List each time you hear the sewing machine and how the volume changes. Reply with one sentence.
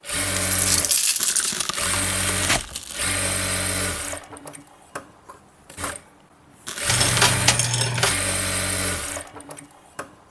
The sewing machine can be heard from 0.0 to 10.2 s, getting quieter then louder.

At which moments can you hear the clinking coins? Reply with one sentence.
The clinking coins can be heard from 0.3 to 1.6 s and from 6.8 to 8.2 s.